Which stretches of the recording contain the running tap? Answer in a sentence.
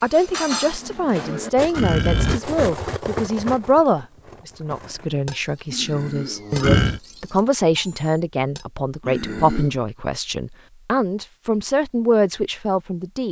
You can't hear the running tap here.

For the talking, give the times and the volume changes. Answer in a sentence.
The talking can be heard from 0.0 to 13.2 s, at a steady volume.